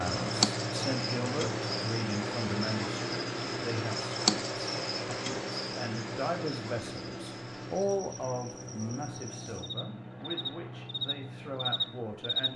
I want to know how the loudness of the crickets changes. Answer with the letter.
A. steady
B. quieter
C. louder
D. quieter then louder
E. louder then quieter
D.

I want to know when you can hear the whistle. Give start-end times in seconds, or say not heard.
not heard.